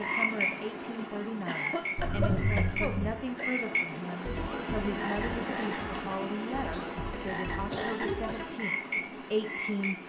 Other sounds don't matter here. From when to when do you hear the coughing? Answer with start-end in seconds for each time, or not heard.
0.9-3.5, 6.7-8.4.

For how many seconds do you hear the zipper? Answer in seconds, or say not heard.
2 s.